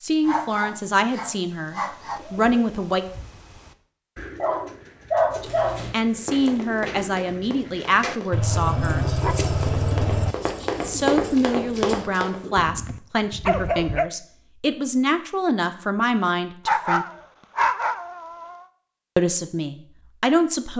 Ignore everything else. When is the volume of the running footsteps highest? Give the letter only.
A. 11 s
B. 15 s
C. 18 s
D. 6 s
A.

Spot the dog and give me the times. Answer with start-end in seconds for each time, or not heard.
0.2-2.2, 4.4-5.8, 8.3-10.3, 12.6-14.1, 16.6-18.6.